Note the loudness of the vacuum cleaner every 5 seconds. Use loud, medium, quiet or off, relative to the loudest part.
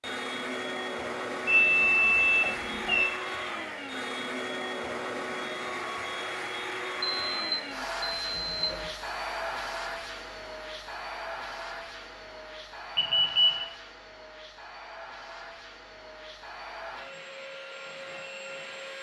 loud, loud, medium, medium.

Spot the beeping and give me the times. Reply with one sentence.
The beeping can be heard from 1.4 to 3.0 s, from 7.0 to 8.9 s and from 12.9 to 13.7 s.